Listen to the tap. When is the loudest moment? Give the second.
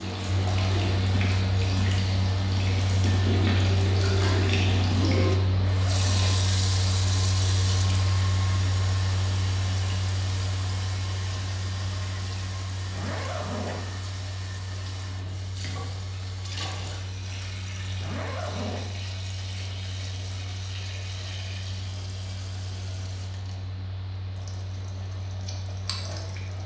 5 s.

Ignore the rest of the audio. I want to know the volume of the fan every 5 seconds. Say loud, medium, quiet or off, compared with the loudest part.
loud, loud, medium, medium, medium, medium.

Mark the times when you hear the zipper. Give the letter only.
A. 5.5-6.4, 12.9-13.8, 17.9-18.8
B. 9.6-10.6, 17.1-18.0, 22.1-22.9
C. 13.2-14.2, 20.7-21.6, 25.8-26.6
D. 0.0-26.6
A.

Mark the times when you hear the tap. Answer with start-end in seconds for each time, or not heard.
0.0-26.6.